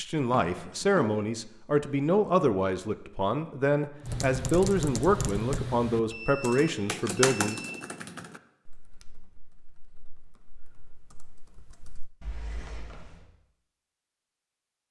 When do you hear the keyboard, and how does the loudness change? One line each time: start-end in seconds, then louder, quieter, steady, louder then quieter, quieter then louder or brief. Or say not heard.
4.0-12.1 quieter.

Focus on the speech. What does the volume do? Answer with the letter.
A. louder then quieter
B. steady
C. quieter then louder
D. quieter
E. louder
B.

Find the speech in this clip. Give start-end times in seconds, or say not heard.
0.0-7.6.